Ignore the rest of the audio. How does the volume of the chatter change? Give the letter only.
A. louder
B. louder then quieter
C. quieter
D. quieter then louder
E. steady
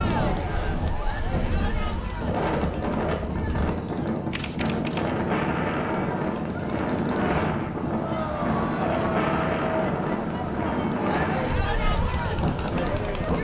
D.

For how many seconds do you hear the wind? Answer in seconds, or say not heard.
13 s.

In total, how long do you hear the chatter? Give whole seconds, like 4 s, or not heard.
13 s.